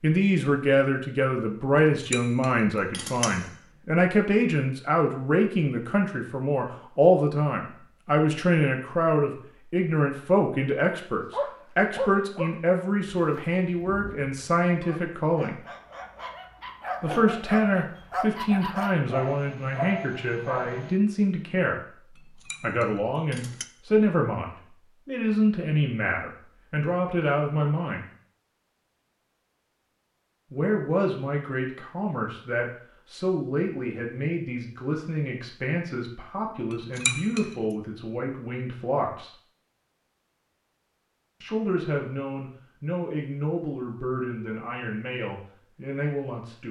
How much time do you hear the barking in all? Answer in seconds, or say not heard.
10 s.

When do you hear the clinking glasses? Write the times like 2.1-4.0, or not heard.
1.8-3.5, 22.1-23.6, 36.7-37.5.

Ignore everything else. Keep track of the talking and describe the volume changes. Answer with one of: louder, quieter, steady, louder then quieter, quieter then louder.
quieter.